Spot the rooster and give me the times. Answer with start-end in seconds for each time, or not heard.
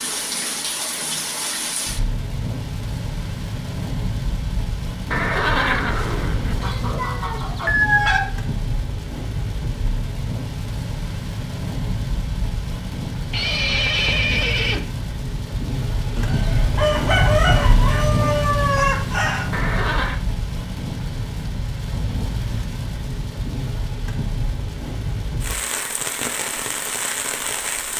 6.6-8.2, 16.1-19.4.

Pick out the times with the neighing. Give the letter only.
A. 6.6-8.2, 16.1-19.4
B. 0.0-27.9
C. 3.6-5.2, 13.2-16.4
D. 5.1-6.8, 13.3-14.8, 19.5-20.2
D.